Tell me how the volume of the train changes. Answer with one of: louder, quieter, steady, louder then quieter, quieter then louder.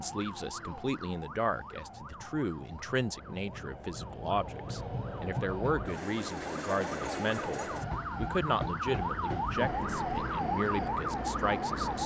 louder.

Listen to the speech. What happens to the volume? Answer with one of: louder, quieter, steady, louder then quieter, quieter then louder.
steady.